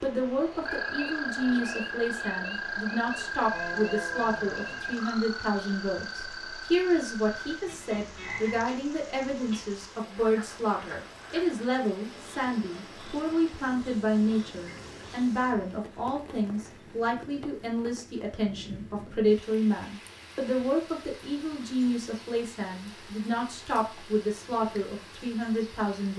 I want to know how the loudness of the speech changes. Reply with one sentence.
The volume of the speech stays about the same.